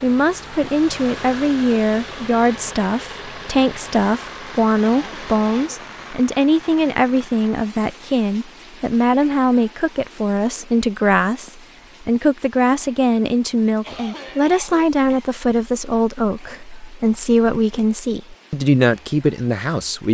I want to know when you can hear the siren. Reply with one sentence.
You can't hear the siren here.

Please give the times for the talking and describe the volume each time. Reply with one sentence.
You can hear the talking from 0.0 to 20.0 s, at a steady volume.